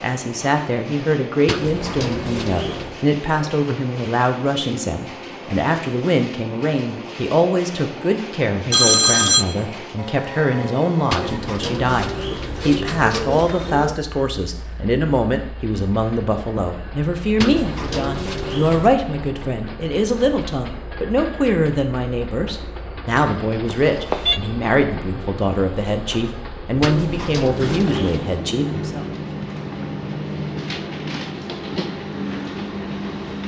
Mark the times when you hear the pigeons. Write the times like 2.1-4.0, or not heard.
1.4-3.0, 11.1-14.0, 17.4-18.9, 26.8-28.4.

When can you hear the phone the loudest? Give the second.
9 s.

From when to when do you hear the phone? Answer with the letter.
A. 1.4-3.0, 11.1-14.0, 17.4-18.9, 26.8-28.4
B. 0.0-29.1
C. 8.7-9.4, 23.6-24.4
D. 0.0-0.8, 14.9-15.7
C.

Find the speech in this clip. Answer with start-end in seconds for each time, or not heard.
0.0-29.1.